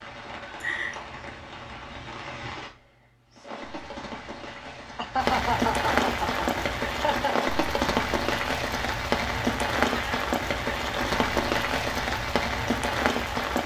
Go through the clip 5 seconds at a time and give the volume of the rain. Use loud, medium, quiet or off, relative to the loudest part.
quiet, loud, loud.